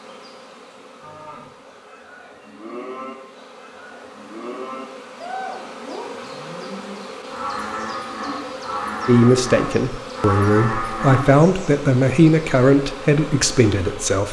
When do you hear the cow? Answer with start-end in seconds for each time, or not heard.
1.0-11.3.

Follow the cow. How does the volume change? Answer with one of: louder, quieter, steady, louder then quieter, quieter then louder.
louder.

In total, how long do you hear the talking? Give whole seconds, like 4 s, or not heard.
5 s.